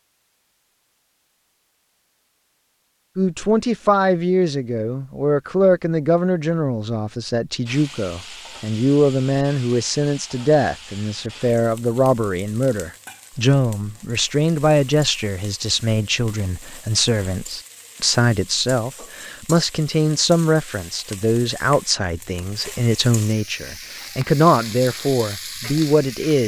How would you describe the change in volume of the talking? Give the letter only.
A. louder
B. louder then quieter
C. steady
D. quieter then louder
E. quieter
C.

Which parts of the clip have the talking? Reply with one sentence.
You can hear the talking from 3.1 to 26.4 s.